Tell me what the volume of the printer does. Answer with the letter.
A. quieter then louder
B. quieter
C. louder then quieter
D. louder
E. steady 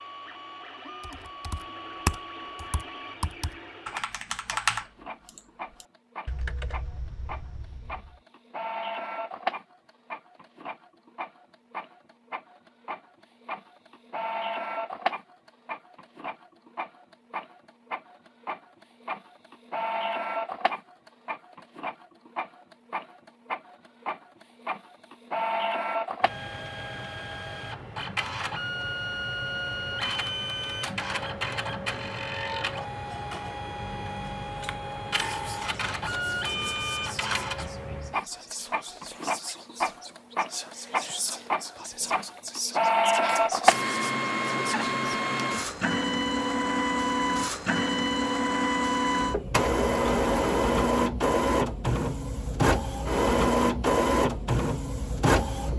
D.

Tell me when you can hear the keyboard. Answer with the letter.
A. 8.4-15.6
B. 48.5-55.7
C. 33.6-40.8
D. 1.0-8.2
D.